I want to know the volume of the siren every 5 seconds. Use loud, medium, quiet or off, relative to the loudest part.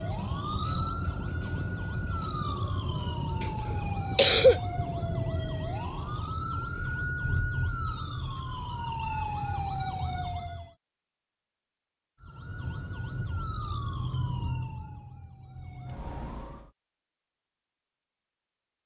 loud, loud, loud, medium.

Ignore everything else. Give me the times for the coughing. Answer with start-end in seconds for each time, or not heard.
3.4-4.6.